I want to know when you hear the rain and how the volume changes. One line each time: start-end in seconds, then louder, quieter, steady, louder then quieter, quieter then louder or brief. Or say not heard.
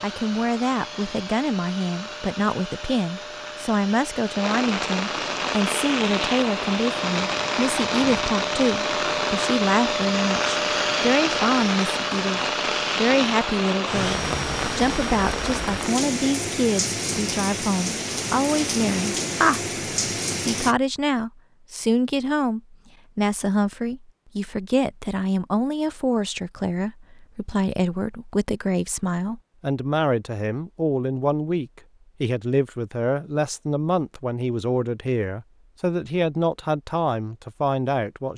0.0-20.8 louder.